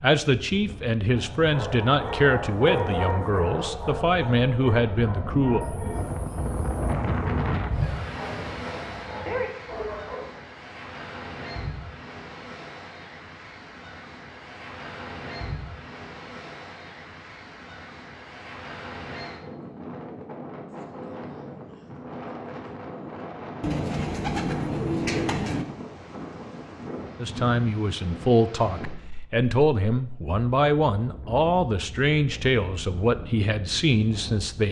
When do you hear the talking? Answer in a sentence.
The talking can be heard from 0.0 to 5.7 s and from 27.2 to 34.6 s.